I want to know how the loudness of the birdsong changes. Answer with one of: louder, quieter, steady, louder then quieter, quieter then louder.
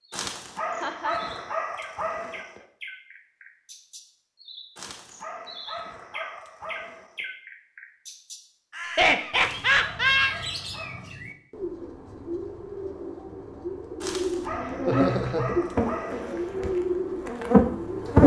louder.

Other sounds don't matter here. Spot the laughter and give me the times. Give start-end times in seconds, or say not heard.
0.8-1.3, 8.8-10.3, 14.8-15.6.